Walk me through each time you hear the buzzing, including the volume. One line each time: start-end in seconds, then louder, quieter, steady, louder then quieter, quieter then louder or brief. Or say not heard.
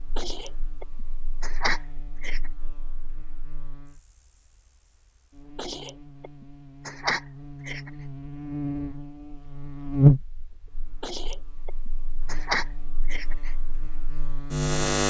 0.0-15.0 louder then quieter.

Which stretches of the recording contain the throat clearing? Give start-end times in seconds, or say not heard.
0.1-2.5, 5.5-7.9, 11.0-13.6.